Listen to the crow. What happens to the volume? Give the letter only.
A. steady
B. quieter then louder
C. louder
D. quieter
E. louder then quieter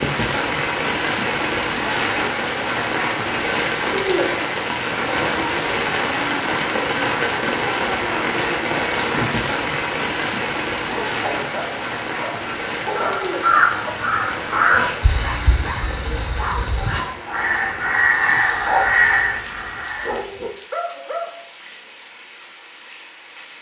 B.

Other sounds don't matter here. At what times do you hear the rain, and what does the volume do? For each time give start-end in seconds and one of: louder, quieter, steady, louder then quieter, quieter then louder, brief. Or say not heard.
0.0-23.5 quieter.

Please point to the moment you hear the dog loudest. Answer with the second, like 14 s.
19 s.